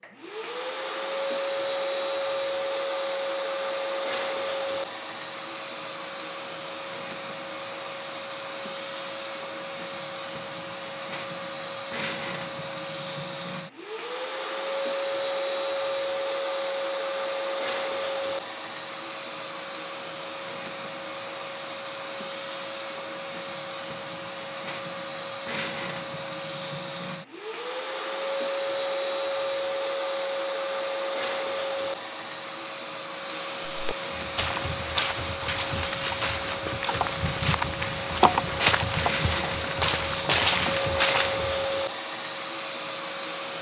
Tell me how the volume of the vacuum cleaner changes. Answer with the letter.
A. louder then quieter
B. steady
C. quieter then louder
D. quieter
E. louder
B.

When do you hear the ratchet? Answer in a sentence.
The ratchet can be heard from 34.1 to 41.9 s.